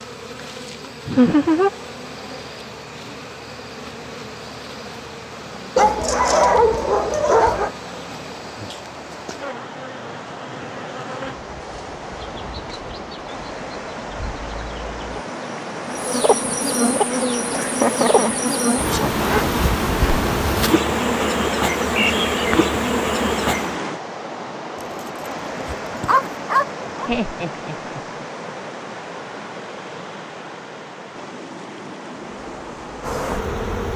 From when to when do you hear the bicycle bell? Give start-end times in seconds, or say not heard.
not heard.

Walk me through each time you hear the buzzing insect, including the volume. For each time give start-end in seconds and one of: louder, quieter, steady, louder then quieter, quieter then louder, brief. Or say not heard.
0.0-23.8 louder
32.1-33.9 brief.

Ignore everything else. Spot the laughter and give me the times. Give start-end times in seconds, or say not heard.
1.1-1.7, 17.5-19.3, 27.1-28.0.